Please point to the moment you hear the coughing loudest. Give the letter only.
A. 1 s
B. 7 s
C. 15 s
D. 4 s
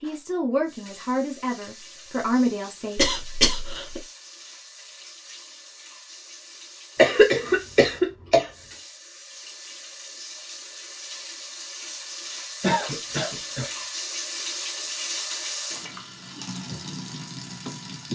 B.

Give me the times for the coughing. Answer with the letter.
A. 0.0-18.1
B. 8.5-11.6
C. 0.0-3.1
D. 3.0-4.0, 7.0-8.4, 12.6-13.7
D.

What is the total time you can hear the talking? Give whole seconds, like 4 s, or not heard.
3 s.